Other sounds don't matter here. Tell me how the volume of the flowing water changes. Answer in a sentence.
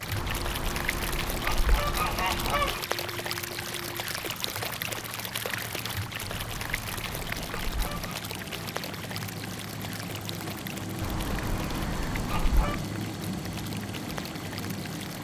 The loudness of the flowing water goes down.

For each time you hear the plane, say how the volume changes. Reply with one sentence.
You can hear the plane from 0.0 to 15.2 s, getting louder.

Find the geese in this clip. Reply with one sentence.
You can hear the geese from 0.1 to 2.8 s, from 6.2 to 8.2 s and from 11.0 to 12.8 s.